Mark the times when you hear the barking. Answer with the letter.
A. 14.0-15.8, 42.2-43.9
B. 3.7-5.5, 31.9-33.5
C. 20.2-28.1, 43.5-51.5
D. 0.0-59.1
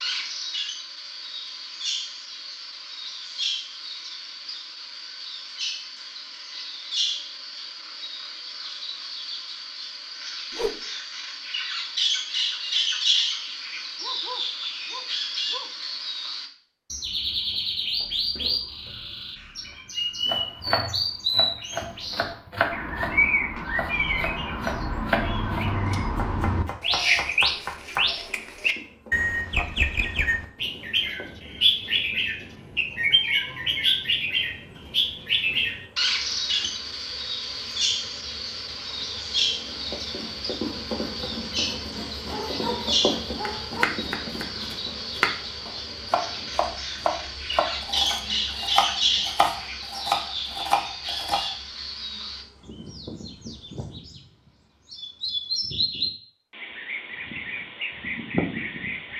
A.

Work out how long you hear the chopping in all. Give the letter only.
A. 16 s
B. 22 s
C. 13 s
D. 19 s
A.